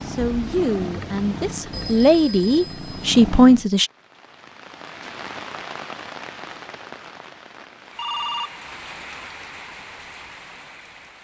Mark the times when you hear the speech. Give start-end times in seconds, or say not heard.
0.0-3.9.